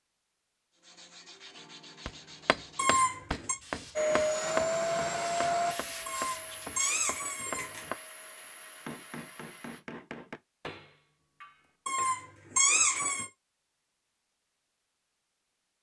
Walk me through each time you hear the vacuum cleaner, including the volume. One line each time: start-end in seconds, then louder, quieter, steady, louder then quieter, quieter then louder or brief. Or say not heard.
4.0-9.8 quieter.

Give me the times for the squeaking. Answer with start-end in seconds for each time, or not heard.
2.8-3.5, 6.0-7.9, 11.8-13.3.